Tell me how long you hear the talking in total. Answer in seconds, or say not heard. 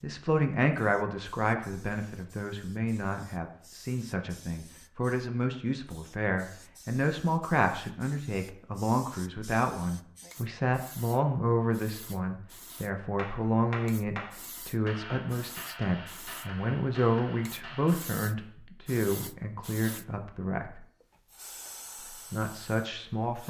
22 s.